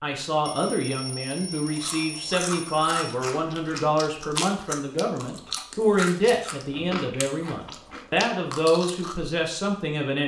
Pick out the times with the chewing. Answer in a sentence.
The chewing can be heard from 1.6 to 9.3 s.